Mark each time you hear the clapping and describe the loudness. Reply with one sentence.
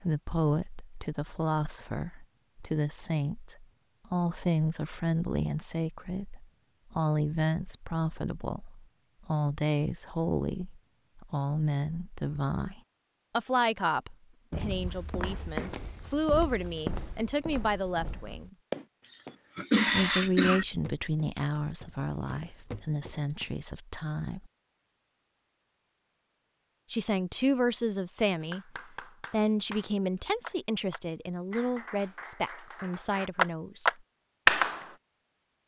You can hear the clapping from 28.4 to 34.9 s, getting louder.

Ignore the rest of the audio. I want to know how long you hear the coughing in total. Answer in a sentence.
You can hear the coughing for 2 seconds altogether.